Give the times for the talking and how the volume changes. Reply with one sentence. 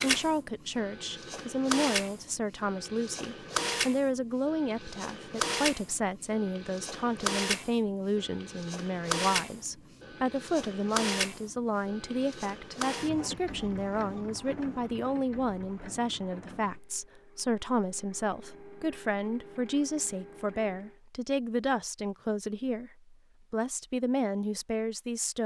The talking can be heard from 0.0 to 25.4 s, at a steady volume.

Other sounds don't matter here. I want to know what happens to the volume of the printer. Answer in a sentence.
The loudness of the printer goes down.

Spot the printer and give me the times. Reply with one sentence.
The printer can be heard from 0.0 to 21.0 s.